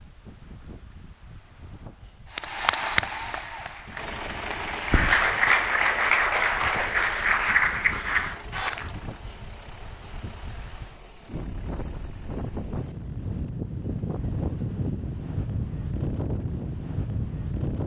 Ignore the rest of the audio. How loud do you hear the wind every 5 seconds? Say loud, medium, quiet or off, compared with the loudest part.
quiet, quiet, loud, loud.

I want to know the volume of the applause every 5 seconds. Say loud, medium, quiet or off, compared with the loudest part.
medium, loud, off, off.